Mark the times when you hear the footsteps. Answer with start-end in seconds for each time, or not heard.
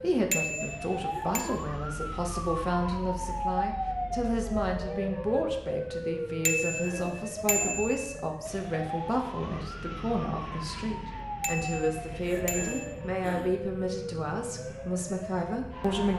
not heard.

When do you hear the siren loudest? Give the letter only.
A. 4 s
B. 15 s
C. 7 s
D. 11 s
A.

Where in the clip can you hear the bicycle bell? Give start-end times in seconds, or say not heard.
0.3-1.4, 6.5-8.1, 11.4-12.9.